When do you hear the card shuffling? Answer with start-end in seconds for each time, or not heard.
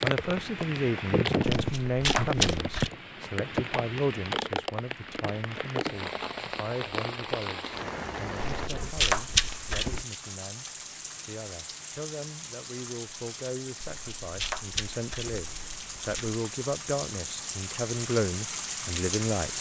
1.5-2.9, 8.4-10.1, 13.8-16.4.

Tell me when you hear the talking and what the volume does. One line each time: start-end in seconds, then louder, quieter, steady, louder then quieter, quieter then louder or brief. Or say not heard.
0.0-19.5 quieter then louder.